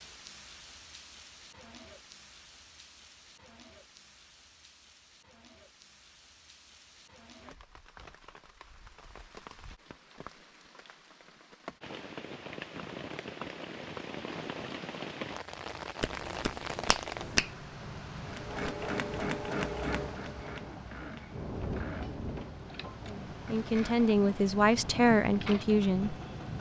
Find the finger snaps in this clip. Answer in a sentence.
You can hear the finger snaps from 16.0 to 17.5 s.